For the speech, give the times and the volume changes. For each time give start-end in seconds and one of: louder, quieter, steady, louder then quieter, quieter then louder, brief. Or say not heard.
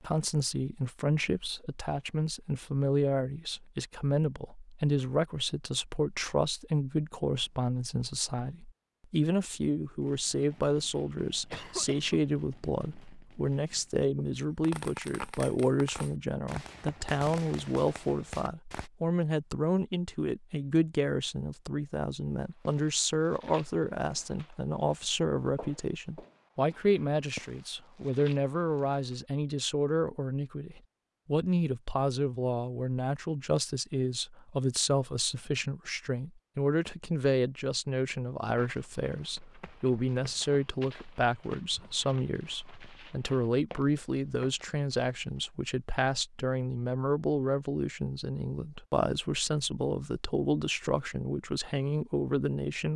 0.0-52.9 steady.